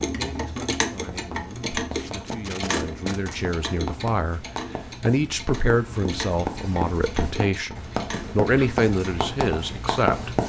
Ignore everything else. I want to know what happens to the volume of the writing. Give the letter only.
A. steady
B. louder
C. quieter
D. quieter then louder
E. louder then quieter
B.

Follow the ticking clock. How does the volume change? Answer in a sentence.
The volume of the ticking clock goes down.